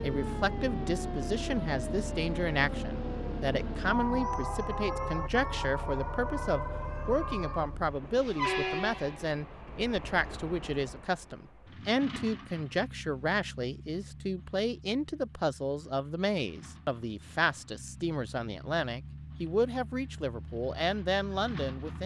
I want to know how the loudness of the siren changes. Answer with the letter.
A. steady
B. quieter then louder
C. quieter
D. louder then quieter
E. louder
A.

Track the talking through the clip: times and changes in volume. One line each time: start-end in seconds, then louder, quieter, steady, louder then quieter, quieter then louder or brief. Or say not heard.
0.0-22.0 steady.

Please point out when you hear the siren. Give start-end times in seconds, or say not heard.
0.0-7.8.